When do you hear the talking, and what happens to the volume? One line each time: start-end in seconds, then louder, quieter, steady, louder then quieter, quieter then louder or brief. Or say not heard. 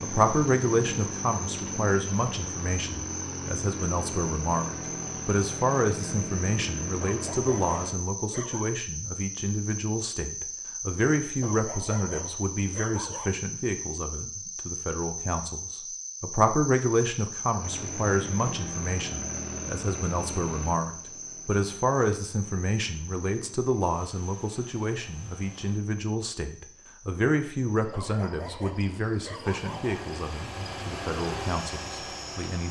0.0-32.6 steady.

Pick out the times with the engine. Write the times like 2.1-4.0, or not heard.
0.0-8.0, 17.6-25.8, 29.4-32.6.